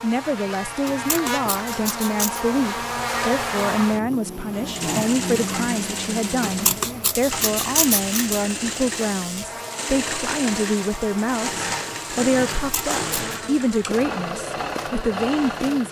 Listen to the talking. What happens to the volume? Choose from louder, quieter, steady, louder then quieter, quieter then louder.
steady.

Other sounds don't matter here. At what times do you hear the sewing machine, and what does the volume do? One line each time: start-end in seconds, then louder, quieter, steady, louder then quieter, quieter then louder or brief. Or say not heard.
4.5-15.8 steady.